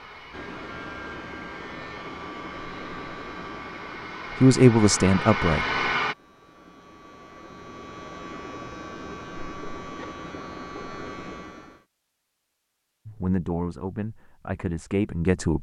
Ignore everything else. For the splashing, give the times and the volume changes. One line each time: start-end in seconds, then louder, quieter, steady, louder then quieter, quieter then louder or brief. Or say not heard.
not heard.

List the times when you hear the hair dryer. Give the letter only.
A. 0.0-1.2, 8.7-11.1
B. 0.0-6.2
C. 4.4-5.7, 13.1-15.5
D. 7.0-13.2
B.